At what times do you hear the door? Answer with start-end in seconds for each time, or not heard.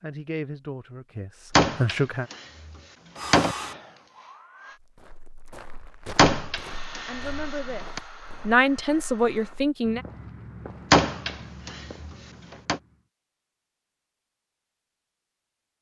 1.6-3.5, 6.2-8.0, 10.9-12.8.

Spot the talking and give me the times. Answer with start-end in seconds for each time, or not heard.
0.0-2.3, 7.0-10.0.